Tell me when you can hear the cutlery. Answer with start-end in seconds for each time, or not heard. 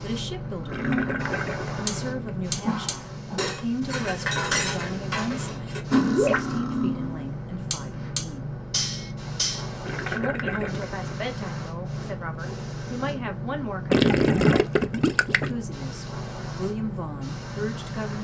0.6-9.7.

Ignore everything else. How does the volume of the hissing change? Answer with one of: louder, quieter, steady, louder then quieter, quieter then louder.
steady.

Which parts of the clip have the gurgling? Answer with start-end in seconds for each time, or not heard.
0.7-2.4, 6.0-6.5, 9.8-11.4, 13.9-15.5.